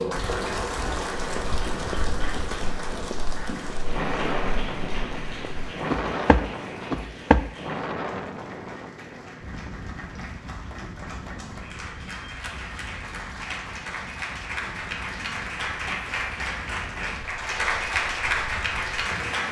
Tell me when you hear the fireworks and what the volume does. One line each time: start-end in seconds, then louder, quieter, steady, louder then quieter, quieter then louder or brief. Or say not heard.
not heard.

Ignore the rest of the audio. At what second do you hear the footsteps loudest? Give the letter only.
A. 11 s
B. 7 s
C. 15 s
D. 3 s
B.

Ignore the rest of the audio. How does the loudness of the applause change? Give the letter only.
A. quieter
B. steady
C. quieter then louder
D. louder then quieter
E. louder
C.